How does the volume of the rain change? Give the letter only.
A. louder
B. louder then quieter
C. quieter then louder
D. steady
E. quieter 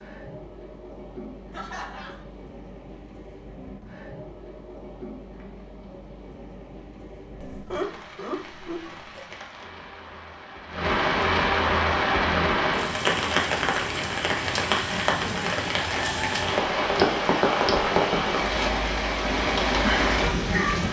A.